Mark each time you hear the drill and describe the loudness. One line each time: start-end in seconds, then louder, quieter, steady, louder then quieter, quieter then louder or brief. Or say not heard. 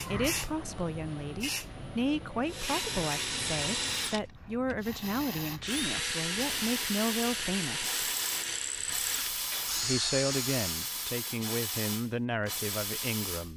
2.5-10.9 steady.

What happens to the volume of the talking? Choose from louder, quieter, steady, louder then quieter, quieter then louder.
steady.